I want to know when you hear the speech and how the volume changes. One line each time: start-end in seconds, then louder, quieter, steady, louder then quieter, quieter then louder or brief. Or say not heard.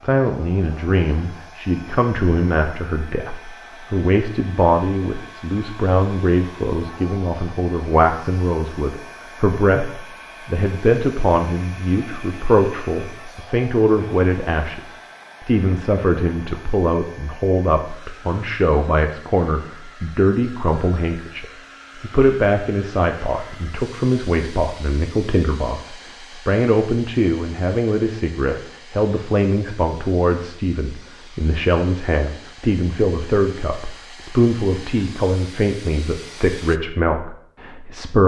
0.0-38.2 steady.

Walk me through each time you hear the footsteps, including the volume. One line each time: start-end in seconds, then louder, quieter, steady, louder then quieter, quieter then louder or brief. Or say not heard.
not heard.